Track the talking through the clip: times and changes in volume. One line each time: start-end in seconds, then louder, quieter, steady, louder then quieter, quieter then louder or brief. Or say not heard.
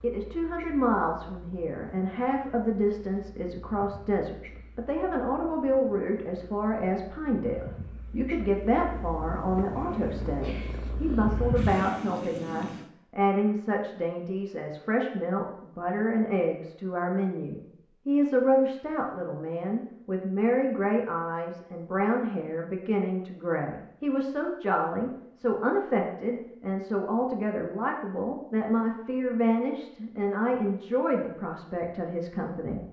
0.0-32.8 steady.